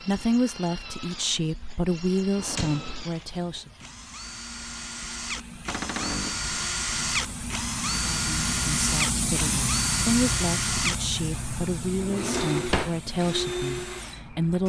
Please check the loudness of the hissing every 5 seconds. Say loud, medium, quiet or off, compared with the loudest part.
quiet, loud, loud.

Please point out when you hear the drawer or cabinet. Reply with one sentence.
You can hear the drawer or cabinet from 2.4 to 3.1 s, from 5.7 to 6.4 s and from 11.9 to 13.0 s.